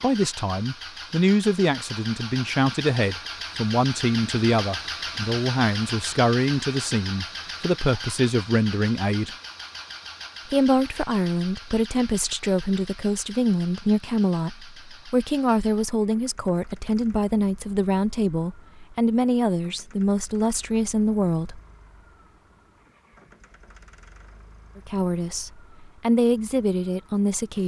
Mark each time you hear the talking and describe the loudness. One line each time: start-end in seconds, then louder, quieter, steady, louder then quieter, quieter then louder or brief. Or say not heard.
0.0-9.3 steady
10.4-21.6 steady
24.8-27.6 brief.